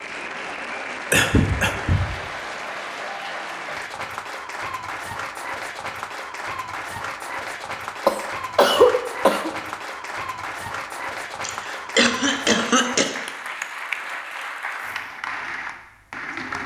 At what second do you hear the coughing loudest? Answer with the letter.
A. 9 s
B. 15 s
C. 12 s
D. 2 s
A.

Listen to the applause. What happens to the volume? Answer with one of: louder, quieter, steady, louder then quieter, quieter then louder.
steady.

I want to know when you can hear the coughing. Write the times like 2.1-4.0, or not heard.
1.1-2.1, 8.1-9.5, 11.4-13.7.